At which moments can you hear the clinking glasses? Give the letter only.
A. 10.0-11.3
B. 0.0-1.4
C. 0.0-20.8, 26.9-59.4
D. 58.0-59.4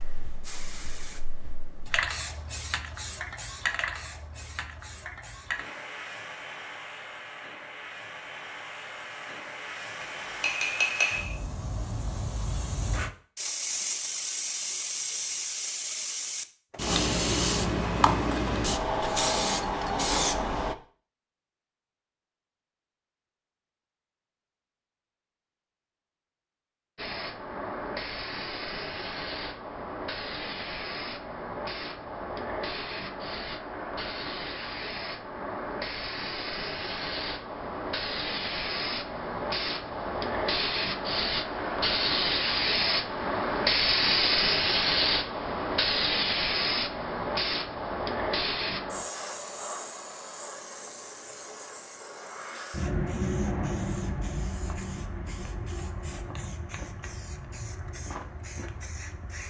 A.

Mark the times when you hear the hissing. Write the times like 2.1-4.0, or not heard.
0.0-20.8, 26.9-59.4.